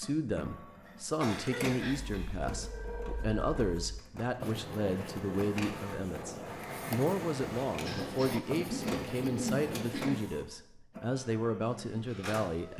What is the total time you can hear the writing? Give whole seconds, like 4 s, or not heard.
8 s.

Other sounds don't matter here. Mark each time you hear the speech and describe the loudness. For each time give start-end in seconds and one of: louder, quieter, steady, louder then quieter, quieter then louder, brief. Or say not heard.
0.0-12.7 steady.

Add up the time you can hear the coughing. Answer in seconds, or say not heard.
4 s.